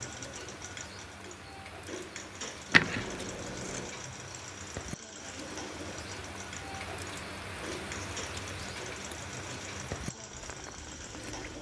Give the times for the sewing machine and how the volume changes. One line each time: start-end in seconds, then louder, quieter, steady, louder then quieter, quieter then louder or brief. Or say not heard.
0.0-11.5 steady.